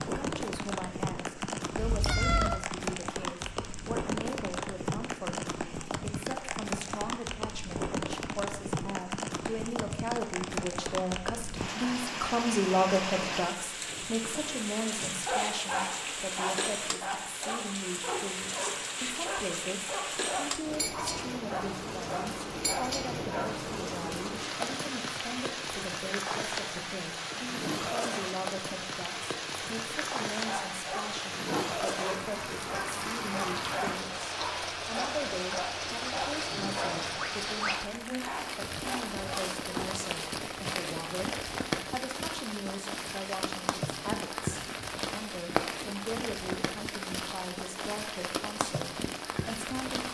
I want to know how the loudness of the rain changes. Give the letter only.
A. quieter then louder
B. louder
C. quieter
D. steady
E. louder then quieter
D.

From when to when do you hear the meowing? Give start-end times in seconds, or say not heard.
1.8-2.6.